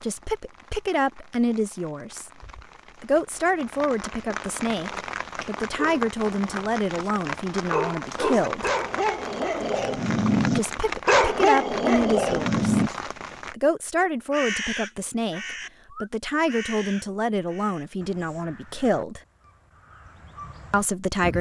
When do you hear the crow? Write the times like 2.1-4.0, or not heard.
14.3-21.3.